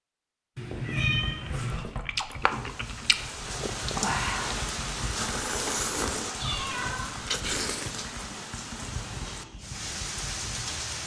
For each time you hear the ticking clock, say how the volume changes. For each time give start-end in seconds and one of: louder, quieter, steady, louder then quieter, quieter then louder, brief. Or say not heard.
not heard.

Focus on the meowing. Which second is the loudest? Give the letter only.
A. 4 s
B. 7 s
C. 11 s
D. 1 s
D.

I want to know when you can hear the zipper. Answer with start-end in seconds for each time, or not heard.
not heard.